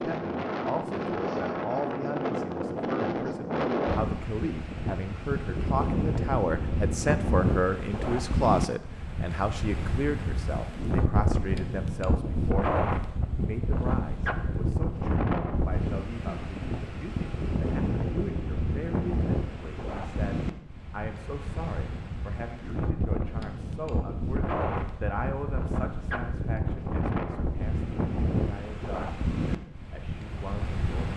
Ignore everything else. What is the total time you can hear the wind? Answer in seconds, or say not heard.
31 s.